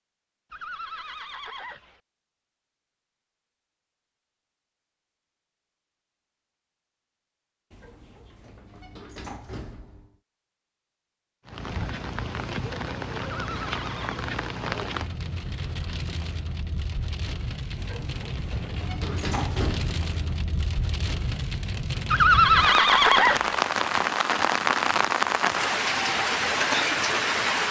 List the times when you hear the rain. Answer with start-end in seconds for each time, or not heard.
11.4-27.6.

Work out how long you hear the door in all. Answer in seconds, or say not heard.
5 s.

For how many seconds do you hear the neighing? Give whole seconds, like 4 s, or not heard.
4 s.